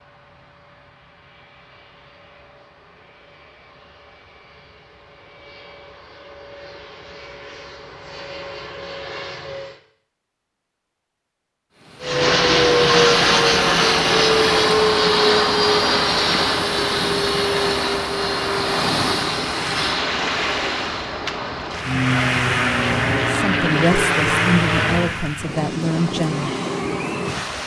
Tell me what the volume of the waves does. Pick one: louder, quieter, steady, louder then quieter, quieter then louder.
steady.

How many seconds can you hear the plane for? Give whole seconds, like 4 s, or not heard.
23 s.